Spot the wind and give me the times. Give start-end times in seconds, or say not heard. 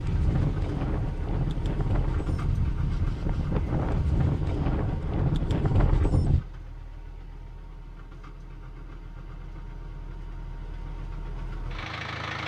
0.0-6.5.